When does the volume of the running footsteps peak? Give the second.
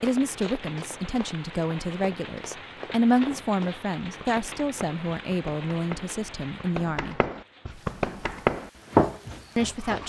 9 s.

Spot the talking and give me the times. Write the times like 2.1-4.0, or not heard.
0.0-7.2, 9.6-10.0.